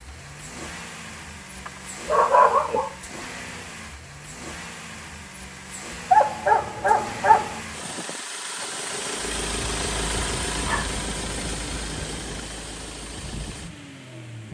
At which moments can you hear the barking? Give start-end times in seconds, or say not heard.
1.6-3.0, 6.1-7.6, 10.6-12.4.